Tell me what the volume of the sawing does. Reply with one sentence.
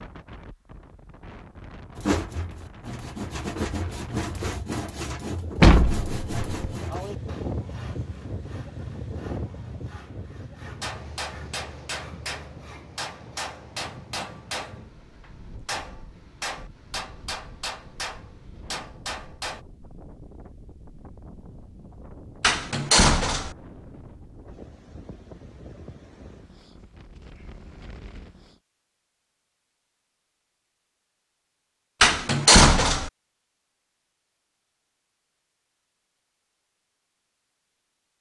The volume of the sawing goes down.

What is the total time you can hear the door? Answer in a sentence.
You can hear the door for 3 seconds altogether.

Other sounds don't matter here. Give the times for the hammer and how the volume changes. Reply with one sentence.
The hammer can be heard from 10.8 to 19.6 s, at a steady volume.